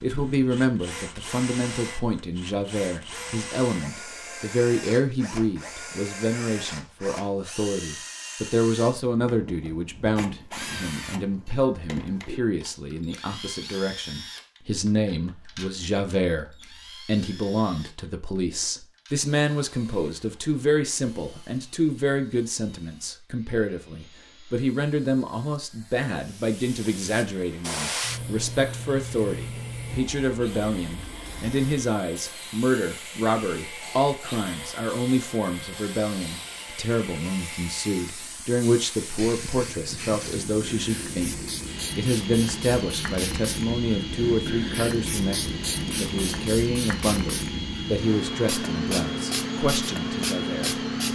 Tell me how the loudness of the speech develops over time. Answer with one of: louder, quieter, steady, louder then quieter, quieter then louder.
steady.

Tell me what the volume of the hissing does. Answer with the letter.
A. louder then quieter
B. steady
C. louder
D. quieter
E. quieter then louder
E.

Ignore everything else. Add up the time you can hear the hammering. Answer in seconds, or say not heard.
not heard.